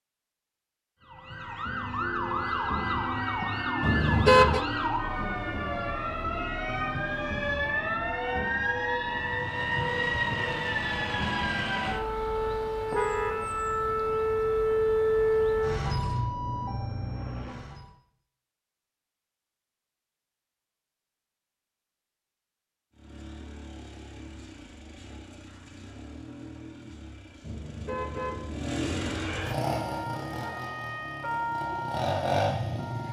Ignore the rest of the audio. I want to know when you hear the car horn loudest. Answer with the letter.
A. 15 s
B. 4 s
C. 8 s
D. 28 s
B.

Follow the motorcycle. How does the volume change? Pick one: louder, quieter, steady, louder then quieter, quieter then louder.
louder.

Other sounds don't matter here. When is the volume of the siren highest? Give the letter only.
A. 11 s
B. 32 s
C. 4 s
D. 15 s
D.